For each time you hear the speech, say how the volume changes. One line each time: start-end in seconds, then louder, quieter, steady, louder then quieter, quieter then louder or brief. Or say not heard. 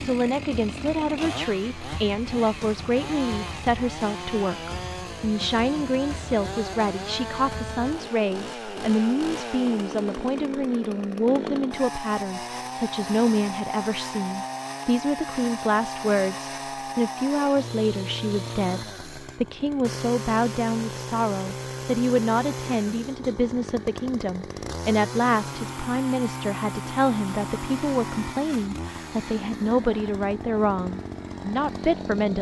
0.0-32.3 steady.